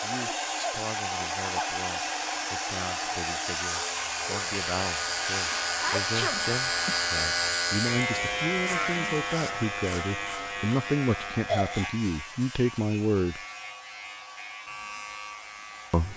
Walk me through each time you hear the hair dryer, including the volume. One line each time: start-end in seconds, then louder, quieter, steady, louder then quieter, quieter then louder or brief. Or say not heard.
0.0-16.1 quieter.